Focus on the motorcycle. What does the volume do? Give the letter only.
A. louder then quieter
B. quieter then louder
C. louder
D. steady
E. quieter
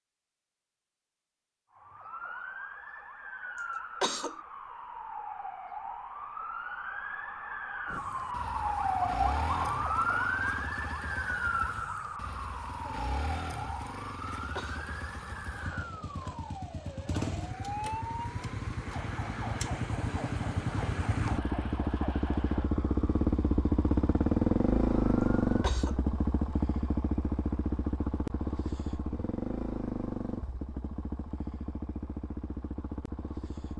A.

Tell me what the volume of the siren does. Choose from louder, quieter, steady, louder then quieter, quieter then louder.
louder then quieter.